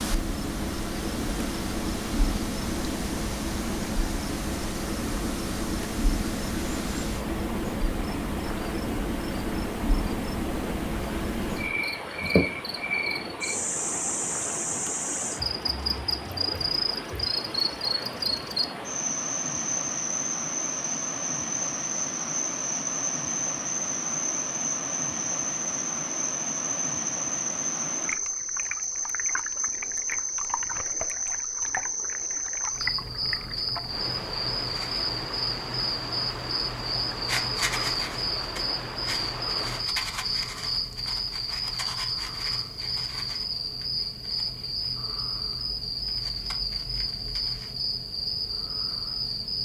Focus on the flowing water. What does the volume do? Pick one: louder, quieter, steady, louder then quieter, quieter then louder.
steady.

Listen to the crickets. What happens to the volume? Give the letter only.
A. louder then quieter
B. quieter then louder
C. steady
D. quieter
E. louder
C.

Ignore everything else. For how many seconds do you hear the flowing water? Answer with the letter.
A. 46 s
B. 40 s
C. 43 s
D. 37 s
B.